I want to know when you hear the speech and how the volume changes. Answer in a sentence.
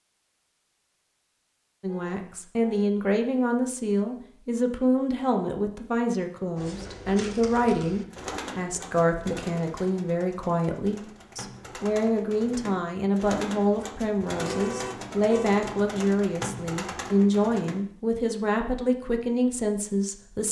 You can hear the speech from 1.8 to 20.4 s, at a steady volume.